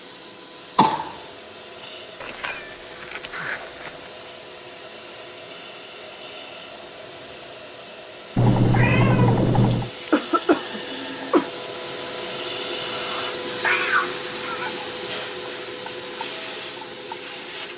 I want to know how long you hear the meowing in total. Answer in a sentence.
You can hear the meowing for 5 seconds altogether.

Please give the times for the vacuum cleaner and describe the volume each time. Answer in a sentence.
The vacuum cleaner can be heard from 0.0 to 17.7 s, getting louder.